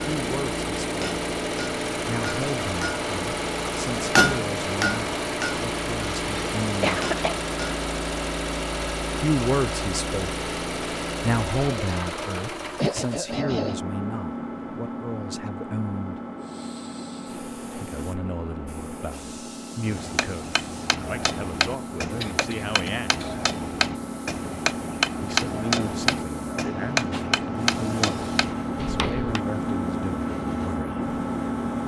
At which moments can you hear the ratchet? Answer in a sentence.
The ratchet can't be heard in this clip.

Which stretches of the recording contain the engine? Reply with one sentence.
The engine can be heard from 0.0 to 31.8 s.